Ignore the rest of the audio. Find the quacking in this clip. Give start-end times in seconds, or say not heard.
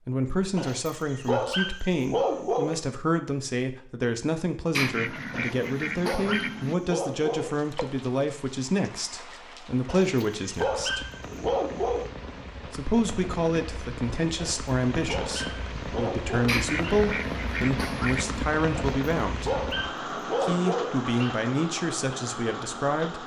4.7-6.8, 16.4-18.4.